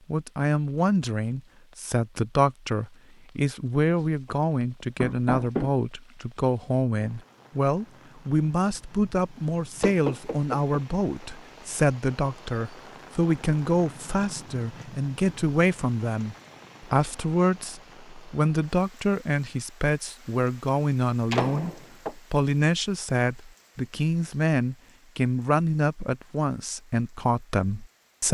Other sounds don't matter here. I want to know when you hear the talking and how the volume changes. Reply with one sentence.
The talking can be heard from 0.1 to 28.2 s, at a steady volume.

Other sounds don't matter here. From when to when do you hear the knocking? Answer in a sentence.
The knocking can be heard from 5.0 to 5.7 s, from 9.8 to 10.8 s and from 21.3 to 22.1 s.